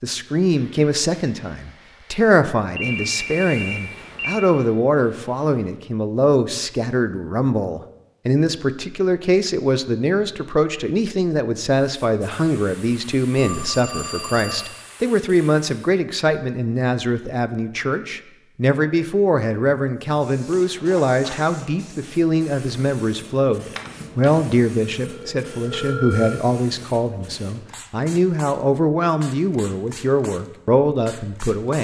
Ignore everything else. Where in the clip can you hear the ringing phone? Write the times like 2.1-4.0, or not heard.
2.8-4.4, 13.3-14.7, 23.8-24.3, 25.0-26.4.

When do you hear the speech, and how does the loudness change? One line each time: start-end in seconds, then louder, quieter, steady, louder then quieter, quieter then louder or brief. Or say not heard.
0.0-31.7 steady.